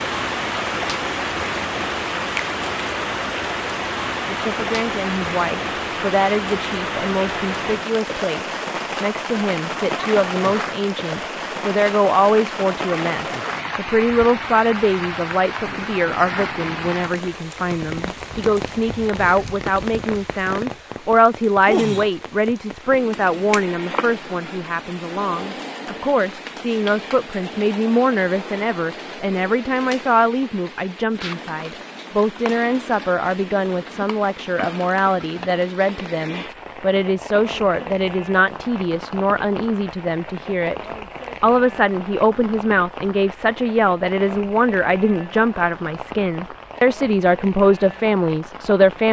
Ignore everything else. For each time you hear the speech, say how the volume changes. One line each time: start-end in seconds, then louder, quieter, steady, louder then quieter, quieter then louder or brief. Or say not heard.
4.2-49.0 steady.